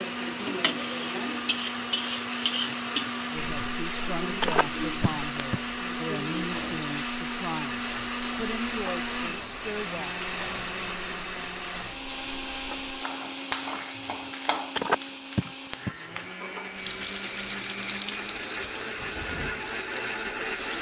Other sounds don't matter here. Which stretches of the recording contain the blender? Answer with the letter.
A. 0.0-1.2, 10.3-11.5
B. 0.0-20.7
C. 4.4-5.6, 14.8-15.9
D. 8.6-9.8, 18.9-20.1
B.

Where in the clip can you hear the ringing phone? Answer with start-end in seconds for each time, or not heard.
4.4-5.6, 14.8-15.9.